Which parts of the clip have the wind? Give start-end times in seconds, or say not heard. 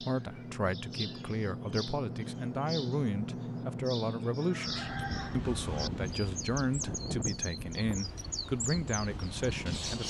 4.8-9.9.